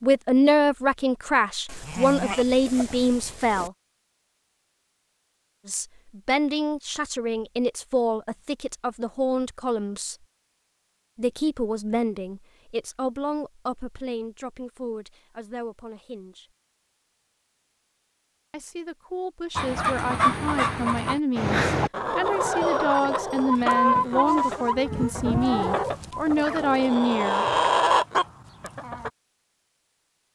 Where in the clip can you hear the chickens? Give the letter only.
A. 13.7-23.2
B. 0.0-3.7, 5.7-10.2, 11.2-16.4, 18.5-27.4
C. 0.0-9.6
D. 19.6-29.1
D.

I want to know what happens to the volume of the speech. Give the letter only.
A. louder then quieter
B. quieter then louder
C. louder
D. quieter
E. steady
B.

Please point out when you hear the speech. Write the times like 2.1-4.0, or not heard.
0.0-3.7, 5.7-10.2, 11.2-16.4, 18.5-27.4.